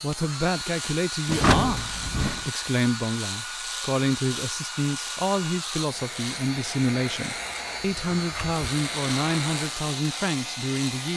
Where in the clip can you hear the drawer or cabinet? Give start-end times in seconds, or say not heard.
1.2-2.5, 7.8-8.7.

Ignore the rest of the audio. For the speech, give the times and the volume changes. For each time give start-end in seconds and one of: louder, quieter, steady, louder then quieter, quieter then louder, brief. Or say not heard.
0.0-11.1 steady.